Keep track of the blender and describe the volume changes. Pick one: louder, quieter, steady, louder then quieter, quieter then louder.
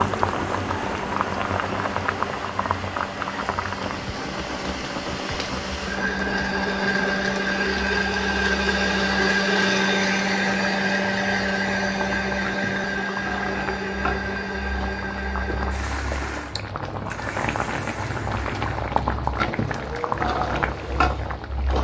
louder then quieter.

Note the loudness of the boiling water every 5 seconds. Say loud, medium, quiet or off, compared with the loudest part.
loud, medium, medium, loud, loud.